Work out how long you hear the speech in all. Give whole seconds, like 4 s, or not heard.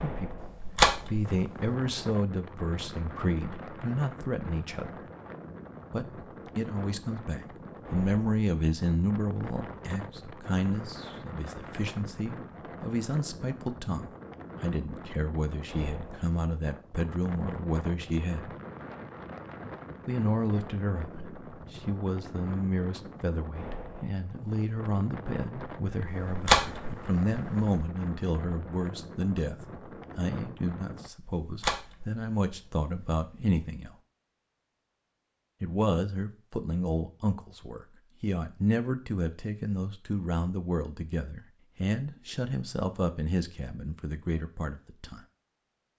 41 s.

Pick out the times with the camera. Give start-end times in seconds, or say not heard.
0.3-1.7, 26.1-27.8, 31.4-33.6.